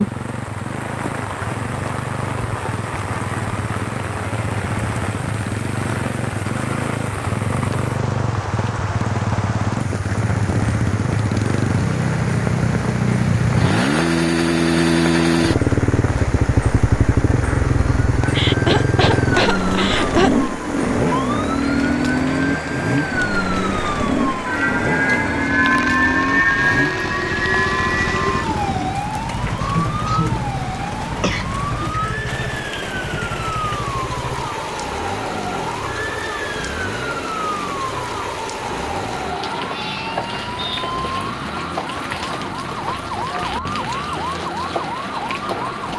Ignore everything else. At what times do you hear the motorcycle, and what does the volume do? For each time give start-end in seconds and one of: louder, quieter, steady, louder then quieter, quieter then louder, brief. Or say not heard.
0.0-45.9 louder then quieter.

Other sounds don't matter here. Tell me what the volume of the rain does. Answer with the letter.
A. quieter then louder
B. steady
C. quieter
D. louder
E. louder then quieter
B.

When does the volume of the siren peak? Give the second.
26 s.